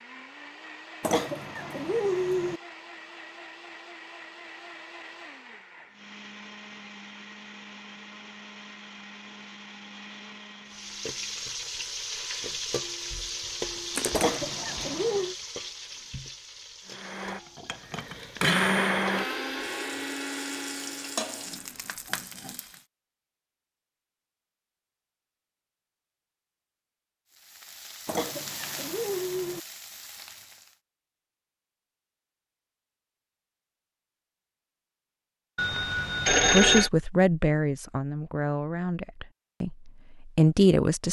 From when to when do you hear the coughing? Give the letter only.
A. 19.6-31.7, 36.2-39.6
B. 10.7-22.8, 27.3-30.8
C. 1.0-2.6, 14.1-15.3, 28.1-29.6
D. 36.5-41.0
C.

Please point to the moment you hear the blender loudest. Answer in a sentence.
The loudest moment of the blender is at 19 seconds.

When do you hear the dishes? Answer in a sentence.
You can't hear the dishes here.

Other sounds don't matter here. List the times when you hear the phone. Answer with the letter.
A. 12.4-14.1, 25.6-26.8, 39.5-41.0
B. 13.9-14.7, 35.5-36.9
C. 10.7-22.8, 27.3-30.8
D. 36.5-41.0
B.